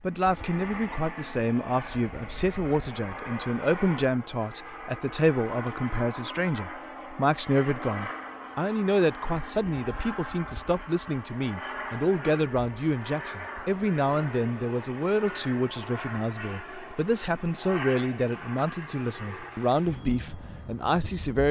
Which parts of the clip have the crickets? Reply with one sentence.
The crickets can't be heard in this clip.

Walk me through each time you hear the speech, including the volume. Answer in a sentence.
You can hear the speech from 0.0 to 21.4 s, at a steady volume.